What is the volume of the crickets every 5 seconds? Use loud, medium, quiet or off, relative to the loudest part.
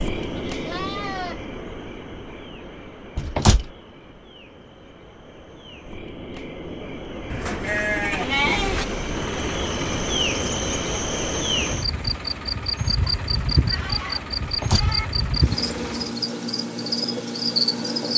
medium, medium, loud, loud.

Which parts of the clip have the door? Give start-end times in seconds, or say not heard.
3.1-3.7, 14.4-14.9.